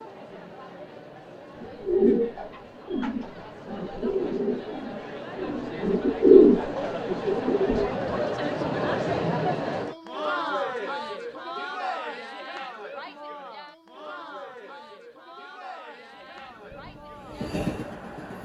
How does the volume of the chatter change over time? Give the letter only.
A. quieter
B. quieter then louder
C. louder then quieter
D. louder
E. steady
C.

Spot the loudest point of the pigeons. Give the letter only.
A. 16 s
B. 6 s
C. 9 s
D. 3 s
B.